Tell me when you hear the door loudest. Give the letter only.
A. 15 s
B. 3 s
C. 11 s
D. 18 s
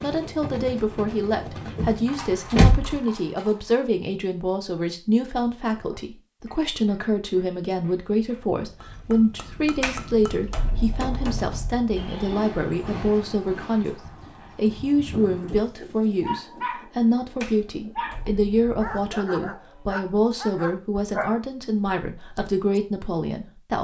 B.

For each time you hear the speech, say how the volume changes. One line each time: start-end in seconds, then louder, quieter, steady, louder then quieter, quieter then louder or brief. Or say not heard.
0.0-23.7 steady.